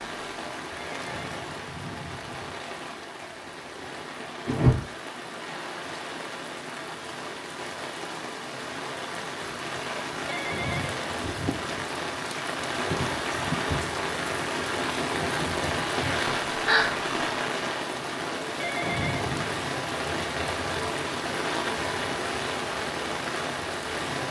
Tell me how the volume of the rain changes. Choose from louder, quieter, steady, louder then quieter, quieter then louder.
louder.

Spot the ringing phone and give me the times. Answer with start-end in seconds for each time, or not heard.
0.8-2.6, 10.2-10.9, 18.6-19.6.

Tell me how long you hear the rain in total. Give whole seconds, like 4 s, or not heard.
24 s.